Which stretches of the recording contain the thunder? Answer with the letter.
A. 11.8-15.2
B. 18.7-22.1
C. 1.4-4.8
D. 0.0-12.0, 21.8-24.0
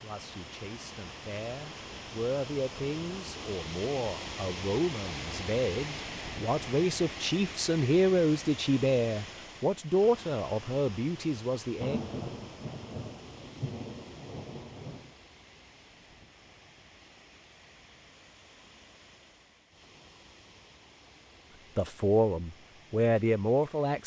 A.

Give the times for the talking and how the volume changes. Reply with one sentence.
The talking can be heard from 0.0 to 12.0 s, getting louder; and briefly from 21.8 to 24.0 s.